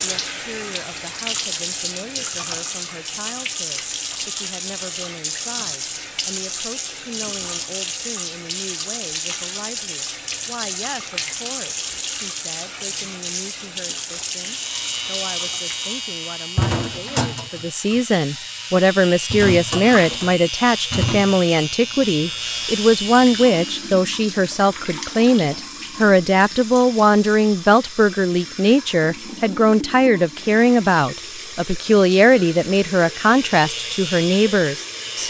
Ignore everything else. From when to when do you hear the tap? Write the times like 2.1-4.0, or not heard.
0.0-35.2.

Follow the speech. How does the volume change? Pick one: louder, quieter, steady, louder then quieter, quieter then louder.
louder.